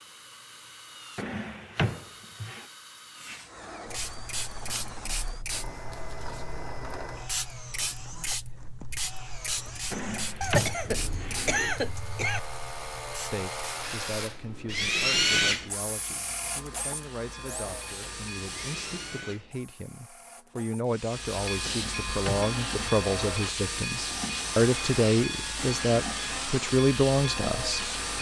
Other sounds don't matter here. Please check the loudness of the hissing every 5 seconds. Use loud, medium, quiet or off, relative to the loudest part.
medium, medium, medium, medium, loud, loud.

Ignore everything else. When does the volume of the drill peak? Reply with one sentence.
The volume of the drill peaks at 15 seconds.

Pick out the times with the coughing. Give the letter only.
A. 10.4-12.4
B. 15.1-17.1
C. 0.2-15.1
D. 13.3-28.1
A.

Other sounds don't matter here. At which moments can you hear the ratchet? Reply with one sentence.
You can't hear the ratchet here.